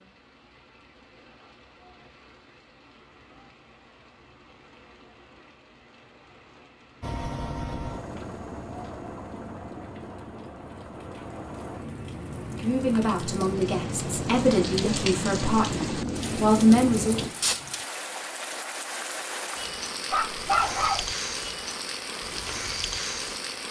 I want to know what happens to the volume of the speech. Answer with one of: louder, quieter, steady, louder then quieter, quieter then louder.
louder.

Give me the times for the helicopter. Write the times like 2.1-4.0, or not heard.
7.0-17.3.